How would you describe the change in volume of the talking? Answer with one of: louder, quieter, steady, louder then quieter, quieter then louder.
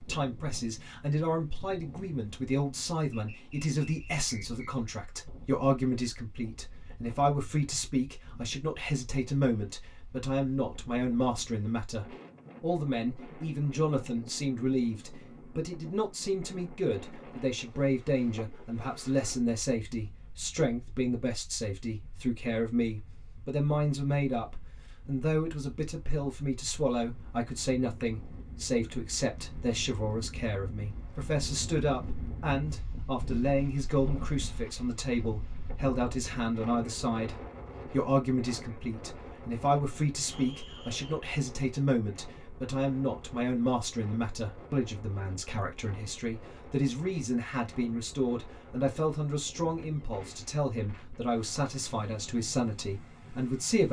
steady.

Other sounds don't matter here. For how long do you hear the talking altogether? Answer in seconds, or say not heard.
54 s.